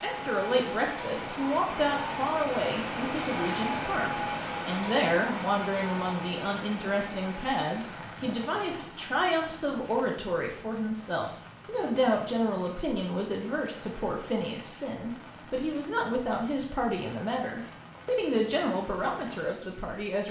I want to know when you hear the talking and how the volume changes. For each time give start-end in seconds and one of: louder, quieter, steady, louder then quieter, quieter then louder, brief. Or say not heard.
0.0-20.2 steady.